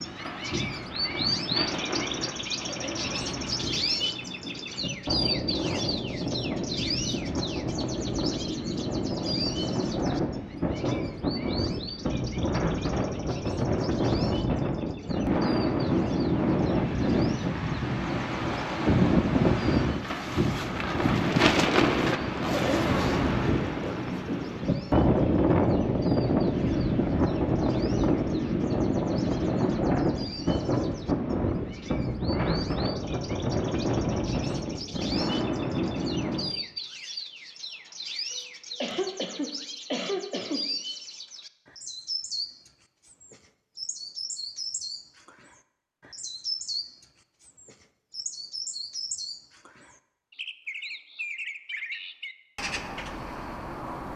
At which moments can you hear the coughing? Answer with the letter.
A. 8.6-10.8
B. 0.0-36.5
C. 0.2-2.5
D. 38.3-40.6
D.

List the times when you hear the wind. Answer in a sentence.
You can hear the wind from 0.0 to 36.5 s.